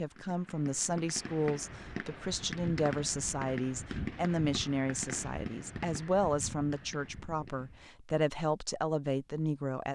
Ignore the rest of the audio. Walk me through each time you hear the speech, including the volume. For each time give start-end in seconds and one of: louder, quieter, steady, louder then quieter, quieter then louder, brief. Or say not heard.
0.0-9.9 steady.